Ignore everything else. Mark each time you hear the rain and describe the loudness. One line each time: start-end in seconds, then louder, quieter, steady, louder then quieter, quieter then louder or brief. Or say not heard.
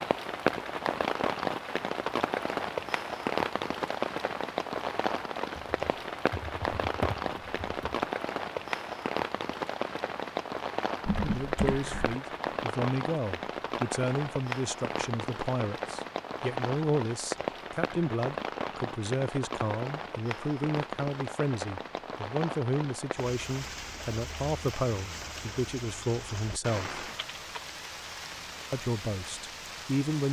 0.0-30.2 quieter.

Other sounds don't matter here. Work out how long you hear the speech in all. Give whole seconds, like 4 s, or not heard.
17 s.